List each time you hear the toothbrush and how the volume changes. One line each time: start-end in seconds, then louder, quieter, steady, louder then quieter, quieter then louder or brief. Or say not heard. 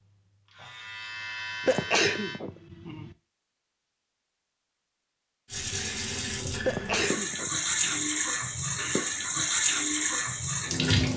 not heard.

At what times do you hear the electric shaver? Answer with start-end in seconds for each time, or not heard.
0.0-2.4.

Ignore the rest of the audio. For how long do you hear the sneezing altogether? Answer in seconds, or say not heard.
3 s.